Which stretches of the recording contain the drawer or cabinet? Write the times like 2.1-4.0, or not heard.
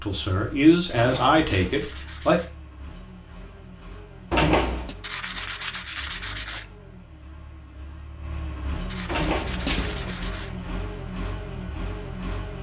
0.9-1.9, 4.3-5.0, 9.1-10.2.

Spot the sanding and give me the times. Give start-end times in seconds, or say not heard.
0.9-2.5, 5.0-6.7, 8.8-10.6.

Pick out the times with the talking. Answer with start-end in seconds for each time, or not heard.
0.0-2.4.